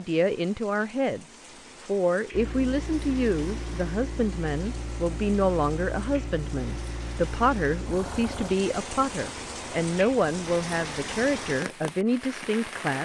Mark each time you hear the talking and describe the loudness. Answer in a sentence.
You can hear the talking from 0.0 to 13.0 s, at a steady volume.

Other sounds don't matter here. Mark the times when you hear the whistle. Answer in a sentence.
You can't hear the whistle here.